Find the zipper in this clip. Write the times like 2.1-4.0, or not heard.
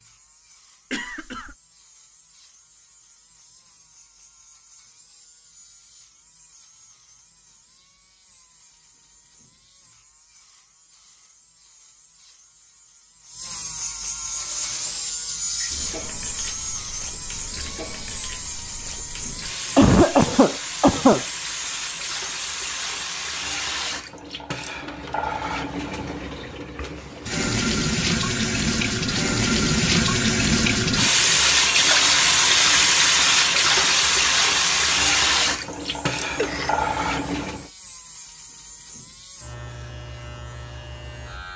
not heard.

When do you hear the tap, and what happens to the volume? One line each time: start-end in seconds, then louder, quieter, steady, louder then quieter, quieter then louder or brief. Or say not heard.
14.2-37.7 louder.